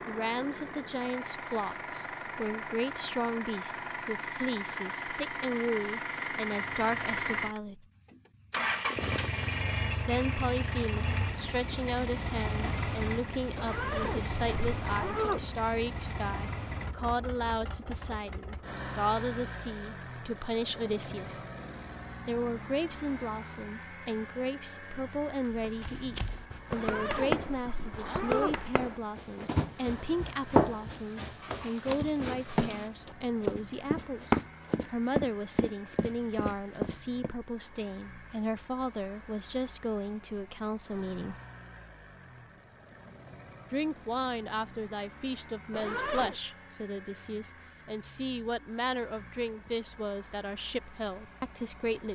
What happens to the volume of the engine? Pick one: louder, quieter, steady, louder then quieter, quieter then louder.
quieter.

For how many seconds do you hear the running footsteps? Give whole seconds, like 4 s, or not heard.
12 s.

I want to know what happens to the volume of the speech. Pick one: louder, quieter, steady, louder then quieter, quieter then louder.
steady.